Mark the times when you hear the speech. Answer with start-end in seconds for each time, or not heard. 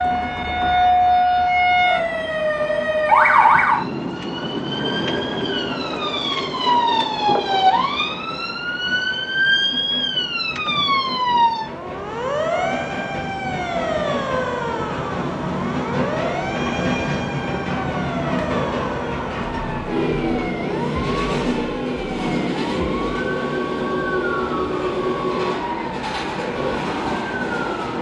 not heard.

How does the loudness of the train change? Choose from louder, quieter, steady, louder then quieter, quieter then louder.
louder.